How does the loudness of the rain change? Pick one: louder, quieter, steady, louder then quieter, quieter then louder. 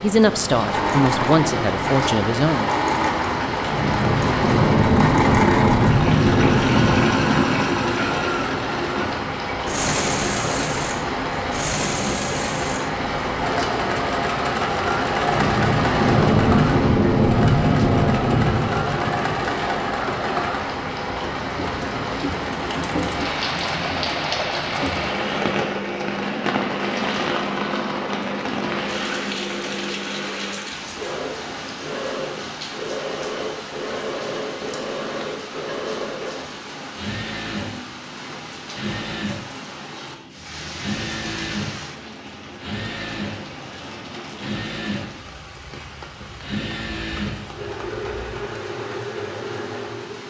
quieter.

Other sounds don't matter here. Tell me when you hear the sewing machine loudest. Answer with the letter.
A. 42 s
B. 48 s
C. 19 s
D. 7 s
D.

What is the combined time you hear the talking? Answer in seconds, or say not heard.
3 s.